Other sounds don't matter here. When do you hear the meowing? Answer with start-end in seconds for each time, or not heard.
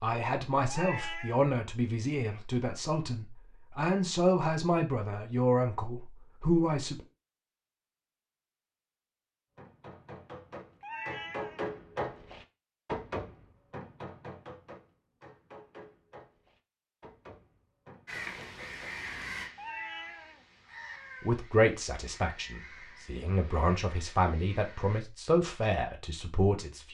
0.7-1.4, 10.8-11.7, 19.6-21.4.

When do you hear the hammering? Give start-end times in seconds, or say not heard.
9.6-18.9.